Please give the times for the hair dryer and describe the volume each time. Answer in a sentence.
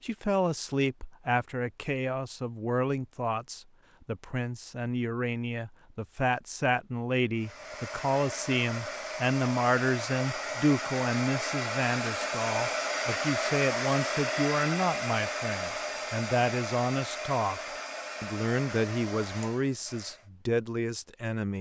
You can hear the hair dryer from 7.3 to 20.2 s, getting louder then quieter.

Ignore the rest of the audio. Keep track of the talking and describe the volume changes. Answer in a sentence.
The volume of the talking stays about the same.